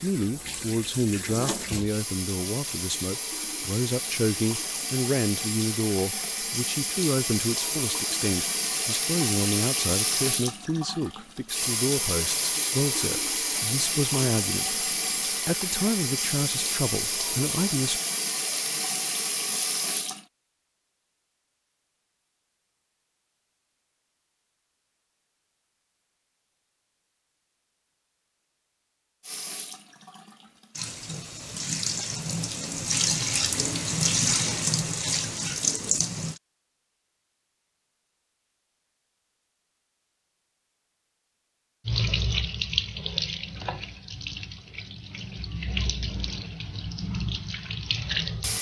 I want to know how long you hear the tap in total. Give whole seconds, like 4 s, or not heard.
34 s.